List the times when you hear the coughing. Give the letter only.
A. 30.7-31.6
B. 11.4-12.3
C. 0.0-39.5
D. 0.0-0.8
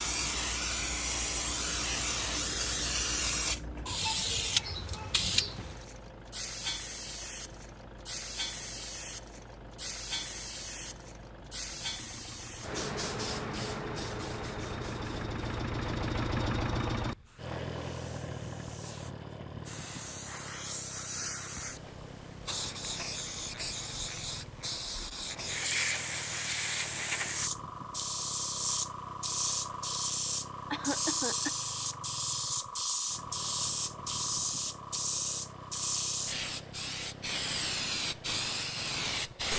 A.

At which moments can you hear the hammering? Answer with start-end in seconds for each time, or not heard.
not heard.